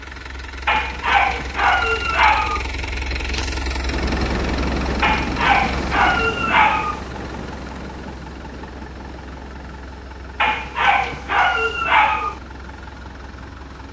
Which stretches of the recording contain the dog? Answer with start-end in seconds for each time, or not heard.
0.7-2.6, 5.0-7.0, 10.4-12.4.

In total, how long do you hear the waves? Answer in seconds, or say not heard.
10 s.